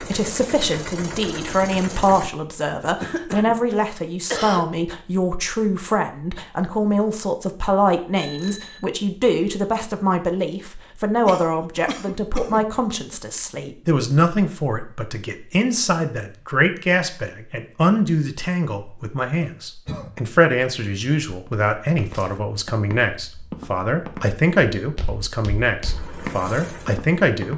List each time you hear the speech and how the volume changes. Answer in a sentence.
The speech can be heard from 0.0 to 27.5 s, at a steady volume.